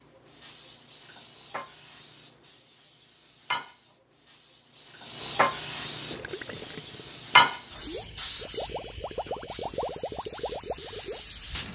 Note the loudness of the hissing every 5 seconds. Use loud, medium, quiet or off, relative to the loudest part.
quiet, loud, medium.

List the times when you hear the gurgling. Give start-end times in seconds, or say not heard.
6.1-11.2.